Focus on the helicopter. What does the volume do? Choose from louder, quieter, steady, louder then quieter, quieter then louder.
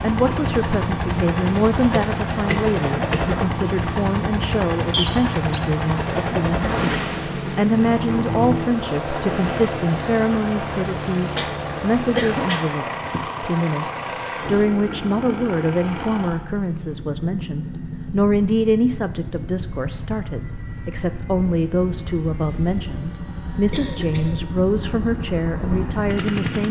quieter.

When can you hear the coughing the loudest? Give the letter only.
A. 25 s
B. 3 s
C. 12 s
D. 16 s
C.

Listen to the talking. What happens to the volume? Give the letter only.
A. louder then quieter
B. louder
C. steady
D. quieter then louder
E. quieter
C.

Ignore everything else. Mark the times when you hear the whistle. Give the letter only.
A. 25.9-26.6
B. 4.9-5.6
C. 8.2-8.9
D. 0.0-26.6
B.